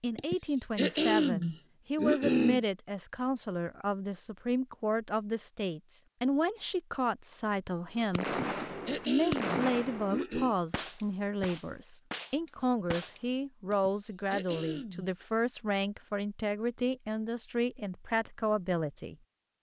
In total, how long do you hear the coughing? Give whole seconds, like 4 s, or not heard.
6 s.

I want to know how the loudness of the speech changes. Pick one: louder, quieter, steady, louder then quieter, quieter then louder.
steady.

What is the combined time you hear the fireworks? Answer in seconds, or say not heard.
5 s.